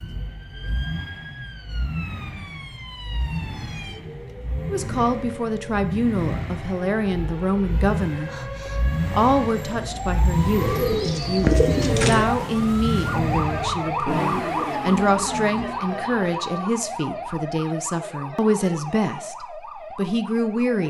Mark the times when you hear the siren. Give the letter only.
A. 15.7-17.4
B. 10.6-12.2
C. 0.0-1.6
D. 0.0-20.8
D.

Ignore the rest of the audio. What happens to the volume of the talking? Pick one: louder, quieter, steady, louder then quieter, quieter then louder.
steady.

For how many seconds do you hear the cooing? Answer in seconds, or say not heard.
2 s.